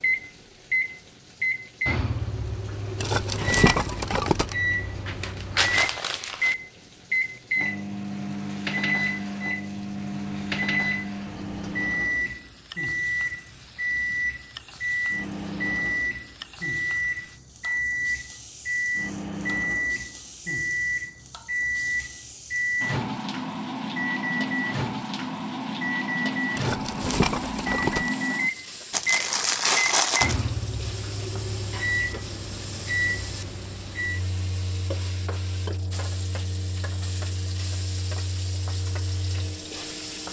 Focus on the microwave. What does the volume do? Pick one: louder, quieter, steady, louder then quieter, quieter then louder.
quieter.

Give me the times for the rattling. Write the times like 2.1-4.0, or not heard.
3.0-4.5, 26.6-28.1.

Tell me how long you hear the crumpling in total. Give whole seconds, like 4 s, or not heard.
3 s.